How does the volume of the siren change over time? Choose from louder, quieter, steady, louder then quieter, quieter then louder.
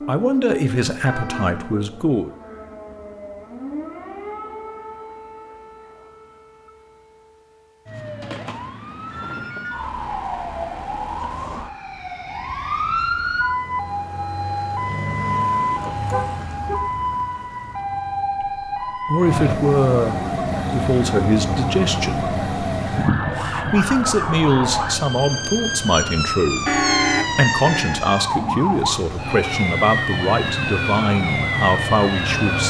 louder.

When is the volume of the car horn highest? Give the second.
27 s.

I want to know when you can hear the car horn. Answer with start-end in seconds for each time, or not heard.
1.1-1.8, 14.8-17.2, 26.6-28.0.